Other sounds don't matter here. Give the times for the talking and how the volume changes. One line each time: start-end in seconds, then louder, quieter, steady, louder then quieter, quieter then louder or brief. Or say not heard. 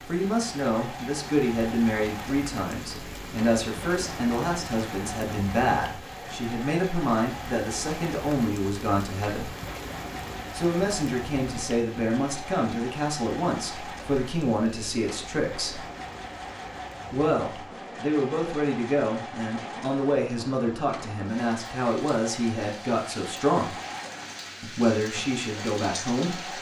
0.1-9.6 steady
10.5-15.8 steady
17.1-23.8 steady
24.6-26.5 brief.